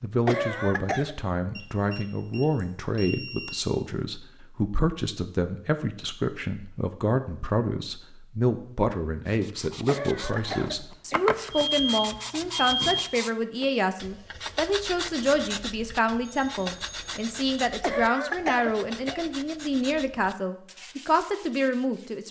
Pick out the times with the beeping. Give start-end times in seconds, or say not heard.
1.6-3.6, 11.5-13.0, 16.2-17.3.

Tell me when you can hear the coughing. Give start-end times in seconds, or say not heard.
0.2-1.1, 9.8-11.3, 17.8-19.3.